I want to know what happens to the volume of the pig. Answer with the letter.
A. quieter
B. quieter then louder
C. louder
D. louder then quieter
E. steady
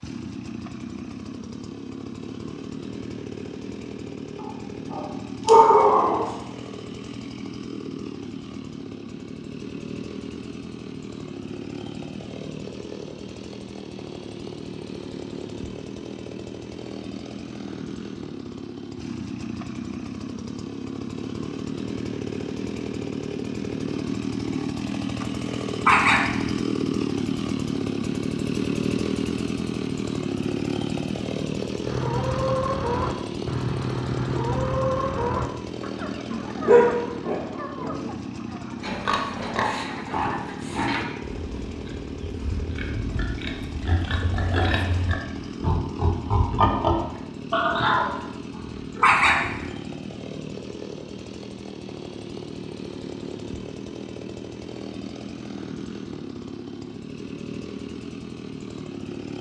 B.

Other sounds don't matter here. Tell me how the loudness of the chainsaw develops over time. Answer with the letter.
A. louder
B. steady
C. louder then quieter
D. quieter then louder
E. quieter
C.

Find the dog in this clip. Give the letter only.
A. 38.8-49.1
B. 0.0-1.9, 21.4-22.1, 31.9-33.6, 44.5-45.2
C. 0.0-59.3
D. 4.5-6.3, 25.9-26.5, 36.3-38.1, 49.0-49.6
D.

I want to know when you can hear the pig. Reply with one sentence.
The pig can be heard from 38.8 to 49.1 s.